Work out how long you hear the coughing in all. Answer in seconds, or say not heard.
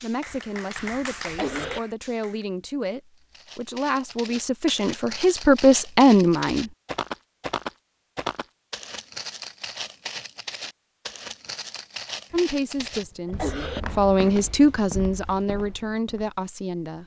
3 s.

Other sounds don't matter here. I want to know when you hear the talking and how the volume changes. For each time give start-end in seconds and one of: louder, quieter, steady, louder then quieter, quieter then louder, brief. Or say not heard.
0.0-6.7 louder
12.3-17.0 louder then quieter.